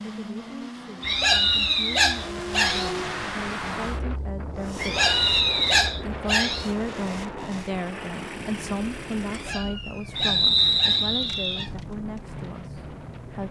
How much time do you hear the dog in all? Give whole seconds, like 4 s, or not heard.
6 s.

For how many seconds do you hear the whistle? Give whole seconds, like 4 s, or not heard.
4 s.